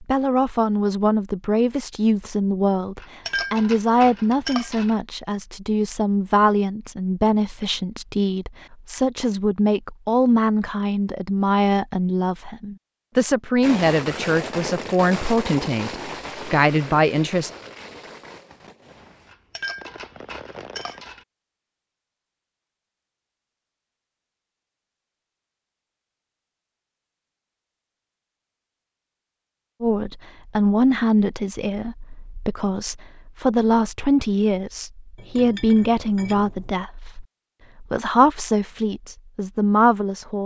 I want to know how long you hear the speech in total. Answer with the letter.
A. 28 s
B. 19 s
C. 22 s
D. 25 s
A.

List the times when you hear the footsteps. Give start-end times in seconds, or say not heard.
not heard.